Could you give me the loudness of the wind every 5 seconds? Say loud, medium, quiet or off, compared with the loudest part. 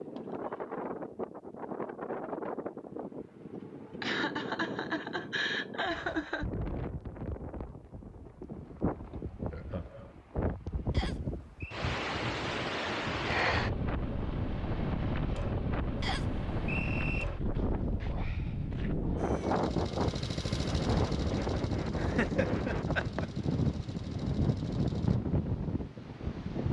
medium, medium, loud, loud, loud, loud.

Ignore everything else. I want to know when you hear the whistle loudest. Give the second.
17 s.